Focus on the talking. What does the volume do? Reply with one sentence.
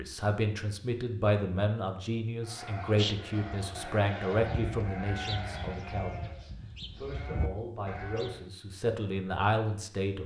The volume of the talking goes down, then up.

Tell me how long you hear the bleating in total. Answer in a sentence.
The bleating can be heard for 6 seconds in total.